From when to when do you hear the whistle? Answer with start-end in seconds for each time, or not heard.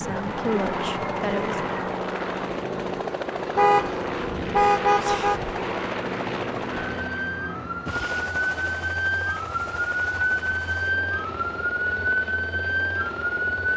not heard.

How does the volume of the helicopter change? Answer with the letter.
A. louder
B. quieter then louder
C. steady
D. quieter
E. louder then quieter
D.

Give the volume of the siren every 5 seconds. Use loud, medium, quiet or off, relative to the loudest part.
medium, loud, loud.